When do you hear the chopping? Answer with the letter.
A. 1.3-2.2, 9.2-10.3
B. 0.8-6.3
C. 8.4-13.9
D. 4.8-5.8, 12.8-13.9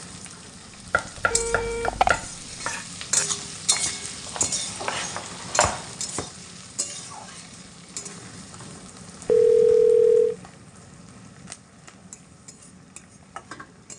B.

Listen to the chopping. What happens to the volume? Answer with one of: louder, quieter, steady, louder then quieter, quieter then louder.
quieter then louder.